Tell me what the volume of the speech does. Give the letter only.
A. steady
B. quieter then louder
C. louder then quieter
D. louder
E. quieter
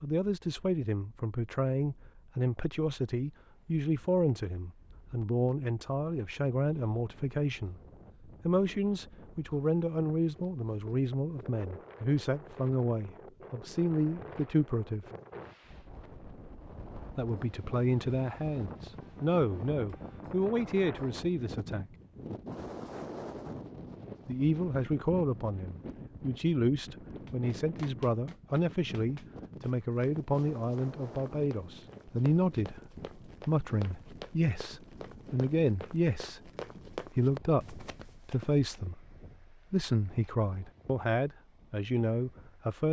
A.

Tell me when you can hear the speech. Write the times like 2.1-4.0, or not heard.
0.0-7.8, 8.4-15.1, 17.1-21.9, 24.2-42.8.